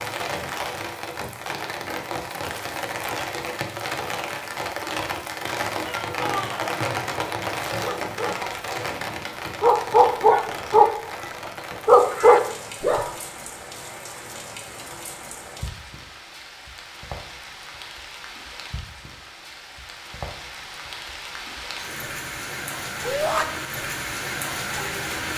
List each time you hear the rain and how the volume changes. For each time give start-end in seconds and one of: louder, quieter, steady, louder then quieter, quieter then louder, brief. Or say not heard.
0.0-25.3 quieter then louder.